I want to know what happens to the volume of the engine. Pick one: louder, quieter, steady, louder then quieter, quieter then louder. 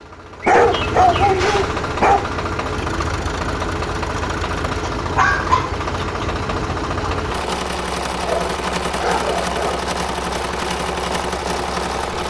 steady.